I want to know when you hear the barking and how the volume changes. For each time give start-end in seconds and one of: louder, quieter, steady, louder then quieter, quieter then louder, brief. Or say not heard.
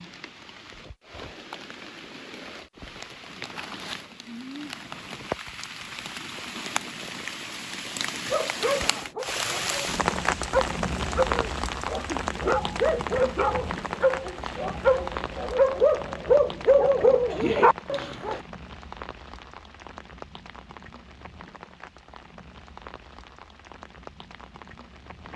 8.3-18.4 louder.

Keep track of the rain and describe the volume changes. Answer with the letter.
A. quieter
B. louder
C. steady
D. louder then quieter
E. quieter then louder
D.